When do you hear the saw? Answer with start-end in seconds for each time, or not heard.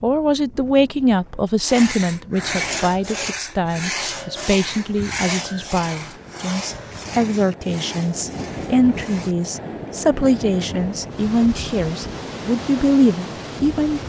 1.6-9.3.